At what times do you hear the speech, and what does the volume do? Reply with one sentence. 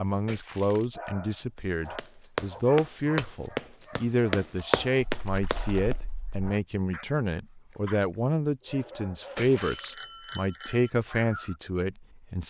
You can hear the speech from 0.0 to 12.4 s, at a steady volume.